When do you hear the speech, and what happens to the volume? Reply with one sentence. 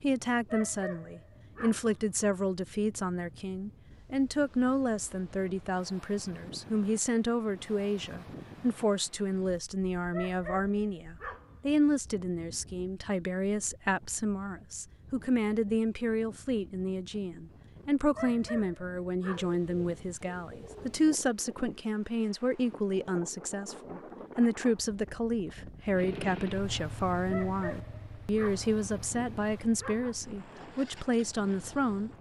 You can hear the speech from 0.0 to 32.1 s, at a steady volume.